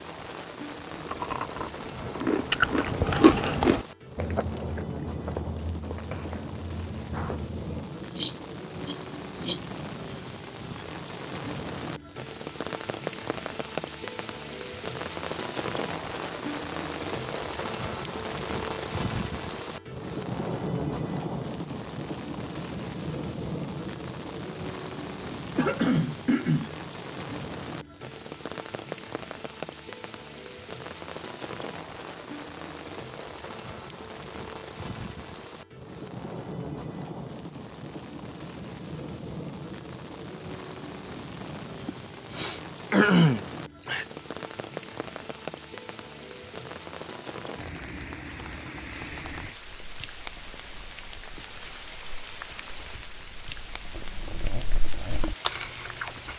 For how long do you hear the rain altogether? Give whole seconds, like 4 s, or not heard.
56 s.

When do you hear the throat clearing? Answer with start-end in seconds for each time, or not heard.
8.1-9.6, 25.6-26.8, 41.9-44.0.